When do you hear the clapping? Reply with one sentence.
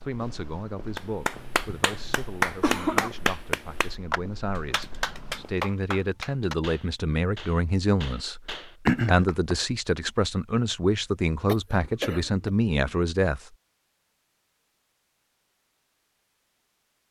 The clapping can be heard from 0.9 to 9.6 s.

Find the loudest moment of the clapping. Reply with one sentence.
The volume of the clapping peaks at 3 seconds.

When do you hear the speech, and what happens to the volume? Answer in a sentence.
The speech can be heard from 0.0 to 13.5 s, getting louder.